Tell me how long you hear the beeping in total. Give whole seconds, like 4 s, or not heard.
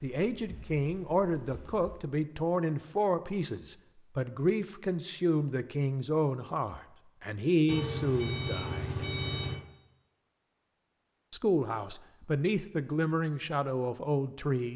2 s.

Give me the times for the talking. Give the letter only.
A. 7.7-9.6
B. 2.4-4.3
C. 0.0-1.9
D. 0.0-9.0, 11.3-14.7
D.